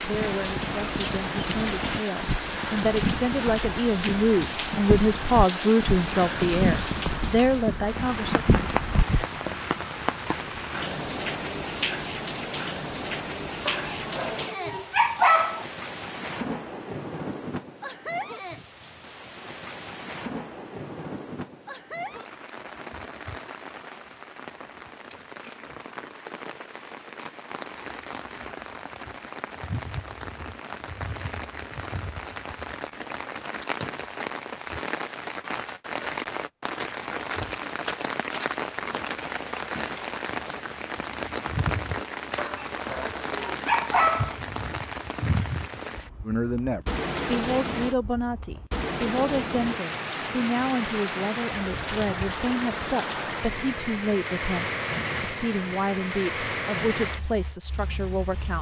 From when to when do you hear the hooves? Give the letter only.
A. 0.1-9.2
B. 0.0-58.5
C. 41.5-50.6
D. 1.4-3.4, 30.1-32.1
A.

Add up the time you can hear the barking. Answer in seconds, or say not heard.
4 s.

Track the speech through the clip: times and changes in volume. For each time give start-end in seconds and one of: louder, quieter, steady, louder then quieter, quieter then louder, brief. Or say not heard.
0.0-8.4 louder
46.2-58.5 steady.